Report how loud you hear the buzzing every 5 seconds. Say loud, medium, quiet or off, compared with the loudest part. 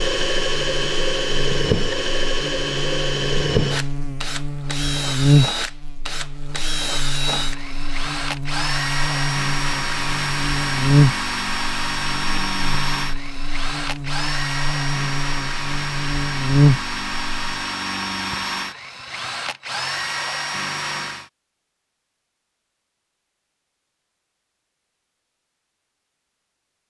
medium, loud, loud, loud, off, off.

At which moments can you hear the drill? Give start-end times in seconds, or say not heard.
0.0-21.3.